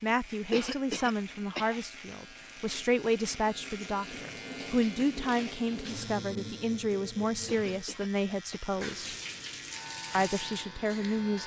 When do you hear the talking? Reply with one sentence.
The talking can be heard from 0.0 to 9.2 s and from 10.2 to 11.4 s.